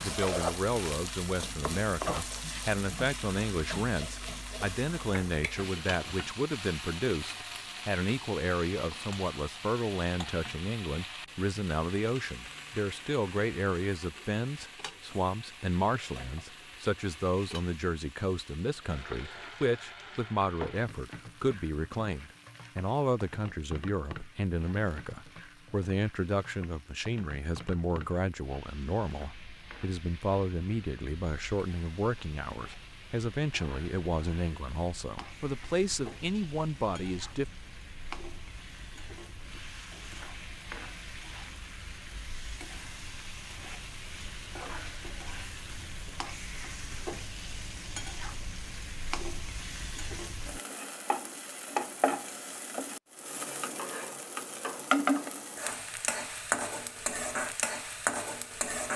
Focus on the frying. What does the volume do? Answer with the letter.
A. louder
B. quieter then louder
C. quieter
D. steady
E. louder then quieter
B.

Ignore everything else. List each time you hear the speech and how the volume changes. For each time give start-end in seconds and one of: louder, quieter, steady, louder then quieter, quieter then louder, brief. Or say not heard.
0.0-37.5 steady.